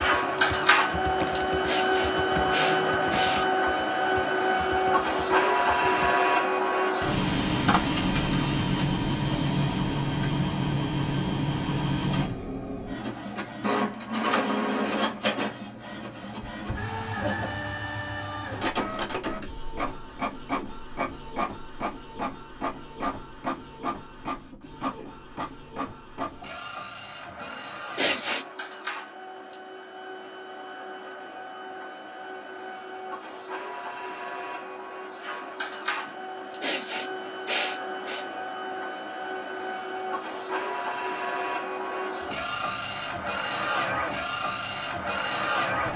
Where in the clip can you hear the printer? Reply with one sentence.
You can hear the printer from 0.0 to 45.9 s.